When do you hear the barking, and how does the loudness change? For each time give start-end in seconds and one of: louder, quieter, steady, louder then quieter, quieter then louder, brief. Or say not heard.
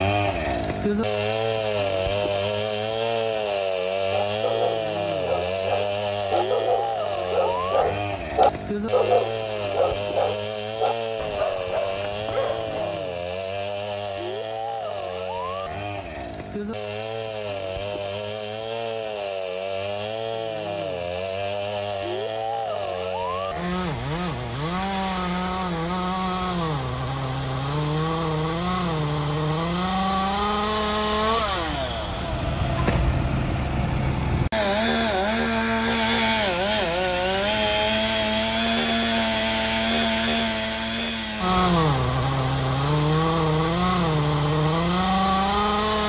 4.1-13.1 louder then quieter.